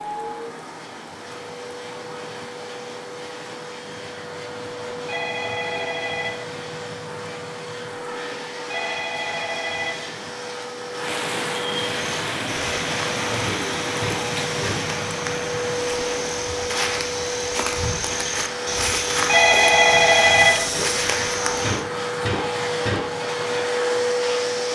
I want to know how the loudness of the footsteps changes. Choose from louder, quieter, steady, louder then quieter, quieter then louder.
louder.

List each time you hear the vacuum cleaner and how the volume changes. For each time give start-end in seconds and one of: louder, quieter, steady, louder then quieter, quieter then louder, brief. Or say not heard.
0.0-24.7 louder.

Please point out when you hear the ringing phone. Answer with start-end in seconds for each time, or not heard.
5.0-6.5, 8.6-10.2, 19.1-20.9.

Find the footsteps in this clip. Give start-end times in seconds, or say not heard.
12.2-21.9.